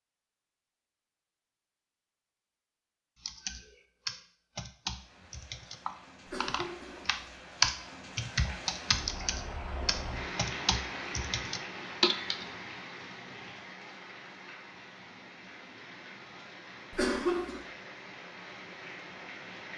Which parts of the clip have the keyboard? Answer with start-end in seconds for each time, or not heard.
3.2-12.4.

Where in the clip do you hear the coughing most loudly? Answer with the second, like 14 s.
17 s.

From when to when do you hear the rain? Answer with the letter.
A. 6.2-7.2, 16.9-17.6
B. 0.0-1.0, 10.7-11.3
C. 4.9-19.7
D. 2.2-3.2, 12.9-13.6
C.